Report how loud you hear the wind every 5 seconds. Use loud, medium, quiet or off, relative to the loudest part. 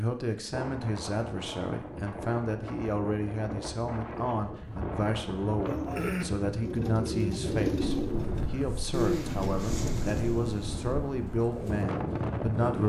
medium, loud, loud.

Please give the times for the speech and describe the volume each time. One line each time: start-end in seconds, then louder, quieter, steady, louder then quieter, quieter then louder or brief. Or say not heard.
0.0-12.8 steady.